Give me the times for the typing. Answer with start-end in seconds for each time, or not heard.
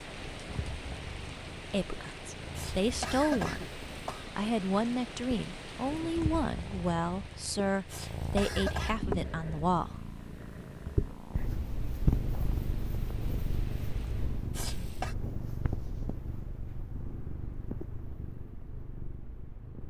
not heard.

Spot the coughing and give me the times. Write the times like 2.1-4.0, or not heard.
2.5-4.3, 7.9-9.0, 14.6-15.2.